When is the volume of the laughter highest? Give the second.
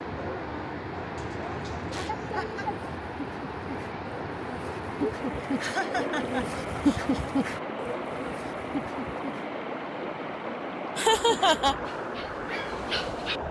11 s.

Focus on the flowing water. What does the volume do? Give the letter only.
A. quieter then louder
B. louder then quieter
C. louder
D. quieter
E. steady
E.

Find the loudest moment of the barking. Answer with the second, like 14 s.
7 s.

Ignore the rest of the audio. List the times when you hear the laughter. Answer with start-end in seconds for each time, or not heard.
1.9-2.6, 5.4-7.3, 10.9-11.8.